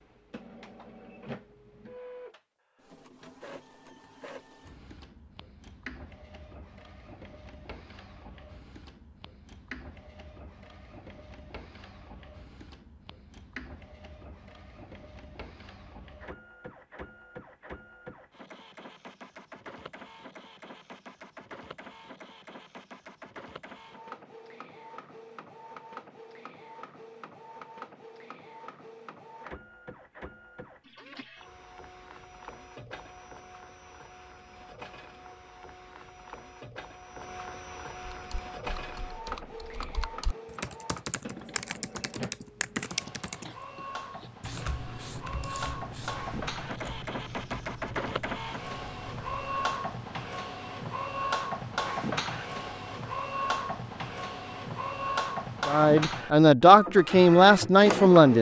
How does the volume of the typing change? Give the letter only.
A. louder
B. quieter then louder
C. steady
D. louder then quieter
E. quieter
D.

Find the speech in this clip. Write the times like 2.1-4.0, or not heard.
55.6-58.3.